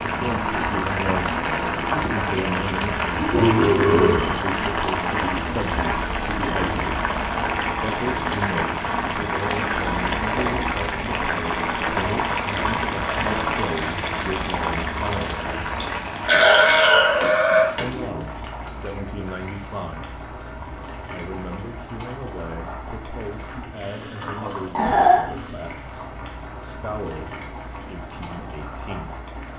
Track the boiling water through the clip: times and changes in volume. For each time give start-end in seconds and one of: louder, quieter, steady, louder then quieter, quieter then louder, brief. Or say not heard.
0.0-29.5 quieter.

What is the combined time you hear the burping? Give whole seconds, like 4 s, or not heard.
4 s.